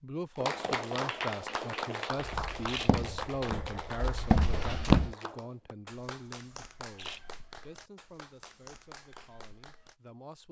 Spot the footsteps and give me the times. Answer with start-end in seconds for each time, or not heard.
2.2-5.2.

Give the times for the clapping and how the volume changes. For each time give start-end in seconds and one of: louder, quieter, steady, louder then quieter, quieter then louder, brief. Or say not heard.
0.3-9.9 quieter.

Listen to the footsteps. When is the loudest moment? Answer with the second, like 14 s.
5 s.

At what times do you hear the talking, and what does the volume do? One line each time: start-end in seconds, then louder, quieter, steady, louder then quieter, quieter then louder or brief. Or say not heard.
0.0-10.4 quieter.